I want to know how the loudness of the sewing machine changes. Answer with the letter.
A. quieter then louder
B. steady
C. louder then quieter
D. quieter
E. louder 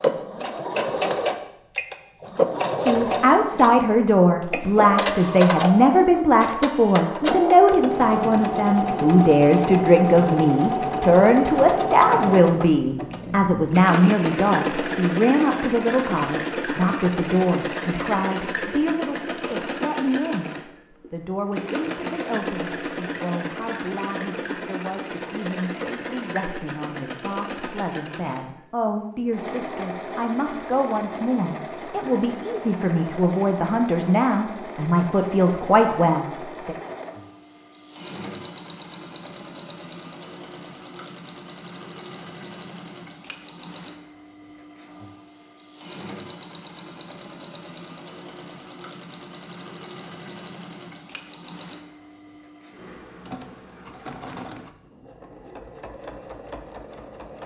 D.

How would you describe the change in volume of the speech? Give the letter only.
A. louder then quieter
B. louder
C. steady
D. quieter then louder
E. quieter
D.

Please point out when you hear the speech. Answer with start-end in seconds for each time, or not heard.
2.8-20.5, 21.1-36.8.